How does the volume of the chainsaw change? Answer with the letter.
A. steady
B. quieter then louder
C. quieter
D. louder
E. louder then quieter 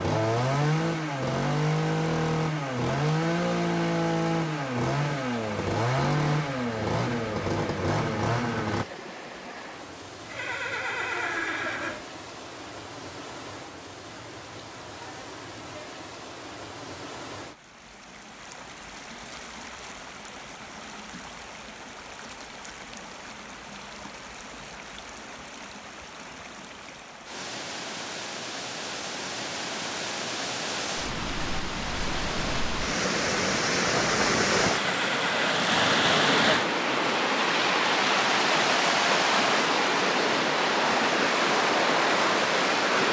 A.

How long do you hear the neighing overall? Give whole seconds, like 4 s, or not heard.
3 s.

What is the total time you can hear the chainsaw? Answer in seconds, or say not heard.
9 s.